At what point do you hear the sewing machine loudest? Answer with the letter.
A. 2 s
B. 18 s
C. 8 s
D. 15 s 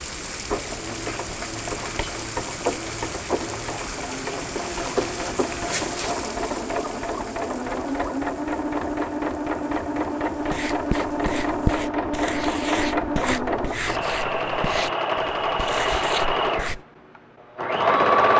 B.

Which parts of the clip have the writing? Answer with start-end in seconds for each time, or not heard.
10.3-16.9.